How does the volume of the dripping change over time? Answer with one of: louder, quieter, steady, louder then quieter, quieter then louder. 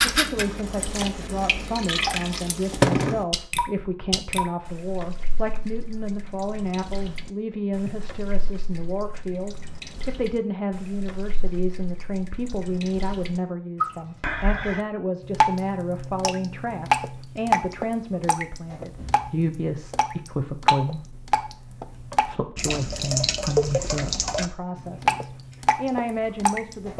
quieter then louder.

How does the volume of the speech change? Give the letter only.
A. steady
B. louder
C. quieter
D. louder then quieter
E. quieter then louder
A.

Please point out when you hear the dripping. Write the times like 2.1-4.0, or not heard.
0.0-26.9.